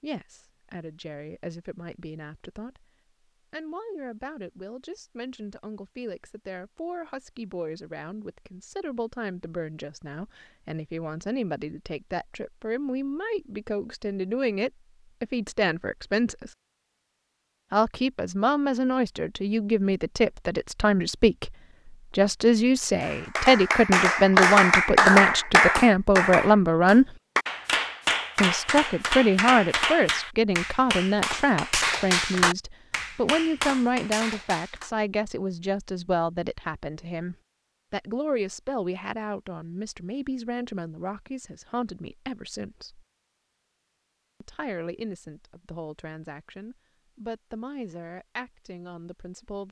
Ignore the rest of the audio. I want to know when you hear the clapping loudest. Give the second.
25 s.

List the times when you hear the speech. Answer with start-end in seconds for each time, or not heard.
0.0-2.9, 3.5-16.5, 17.7-27.1, 28.4-43.0, 44.4-49.6.